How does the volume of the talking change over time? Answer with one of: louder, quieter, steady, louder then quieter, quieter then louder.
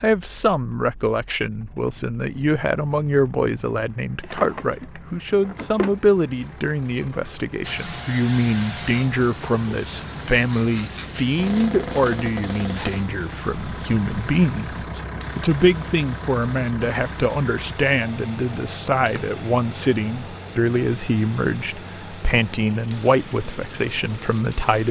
steady.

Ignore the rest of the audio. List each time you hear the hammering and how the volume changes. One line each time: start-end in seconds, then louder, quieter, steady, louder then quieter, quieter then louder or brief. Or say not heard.
not heard.